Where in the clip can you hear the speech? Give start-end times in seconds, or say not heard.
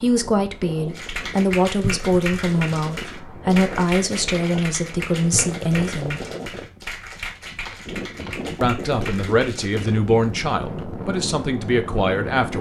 0.0-6.2, 8.6-12.5.